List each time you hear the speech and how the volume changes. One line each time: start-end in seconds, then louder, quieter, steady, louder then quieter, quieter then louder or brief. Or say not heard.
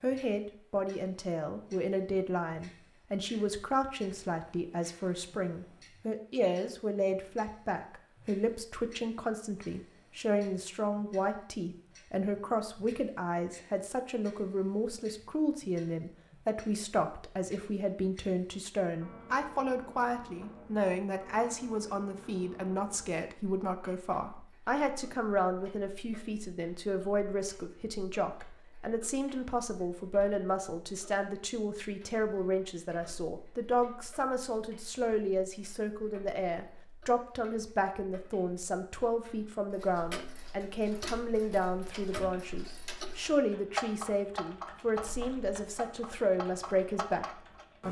0.0-47.2 steady.